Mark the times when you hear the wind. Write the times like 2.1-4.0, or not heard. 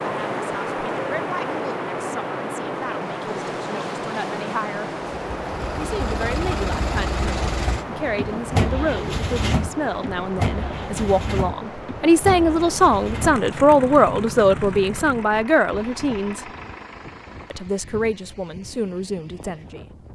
0.0-20.1.